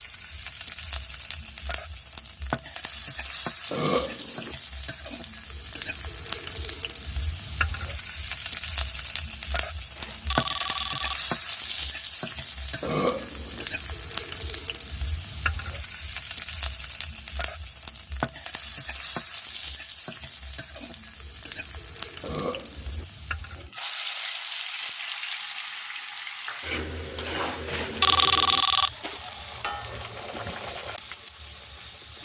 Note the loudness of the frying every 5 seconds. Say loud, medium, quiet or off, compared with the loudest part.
medium, loud, loud, medium, medium, medium, medium.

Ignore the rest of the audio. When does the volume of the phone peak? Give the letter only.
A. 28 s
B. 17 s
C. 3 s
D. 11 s
A.